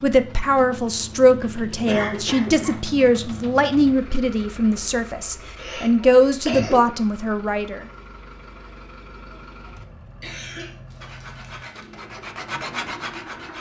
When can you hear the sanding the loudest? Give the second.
13 s.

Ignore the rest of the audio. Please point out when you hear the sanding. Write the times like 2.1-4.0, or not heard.
11.0-13.5.